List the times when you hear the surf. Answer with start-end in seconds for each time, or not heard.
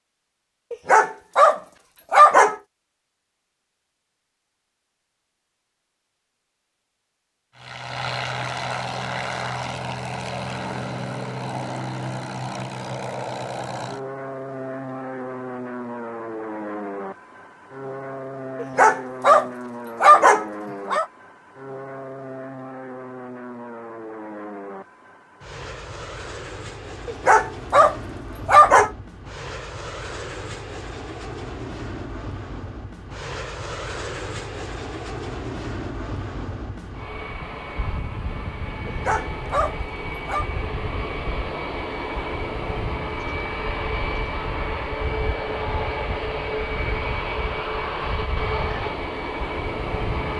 not heard.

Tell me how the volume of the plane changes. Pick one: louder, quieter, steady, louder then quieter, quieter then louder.
quieter then louder.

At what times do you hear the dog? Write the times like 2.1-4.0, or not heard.
0.7-2.5, 18.6-21.1, 27.1-28.9, 38.9-40.5.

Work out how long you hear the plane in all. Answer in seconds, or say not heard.
43 s.